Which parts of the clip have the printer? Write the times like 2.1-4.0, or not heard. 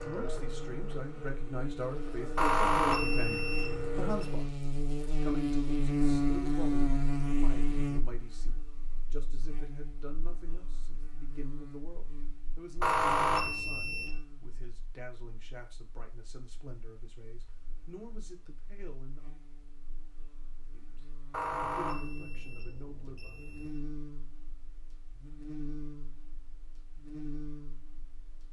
0.0-4.5.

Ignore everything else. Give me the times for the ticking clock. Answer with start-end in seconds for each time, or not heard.
not heard.